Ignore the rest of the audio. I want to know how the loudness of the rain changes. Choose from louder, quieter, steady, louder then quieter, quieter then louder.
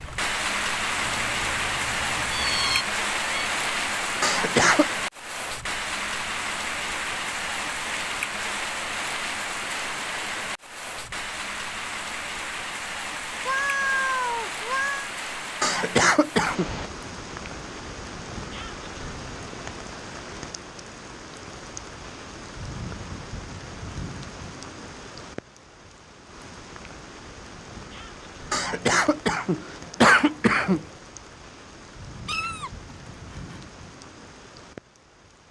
quieter.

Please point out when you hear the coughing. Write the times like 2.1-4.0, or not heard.
4.2-4.8, 15.6-16.6, 28.5-30.9.